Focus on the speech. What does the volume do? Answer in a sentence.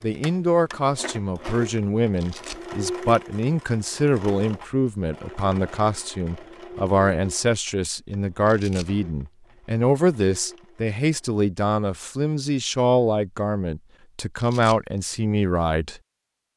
The loudness of the speech stays about the same.